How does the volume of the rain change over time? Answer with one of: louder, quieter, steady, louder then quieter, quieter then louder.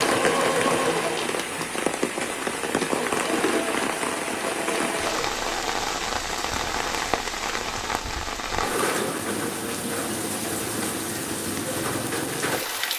steady.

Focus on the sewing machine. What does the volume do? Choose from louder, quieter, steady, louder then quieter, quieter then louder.
quieter then louder.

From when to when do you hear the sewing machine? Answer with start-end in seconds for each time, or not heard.
0.0-5.8.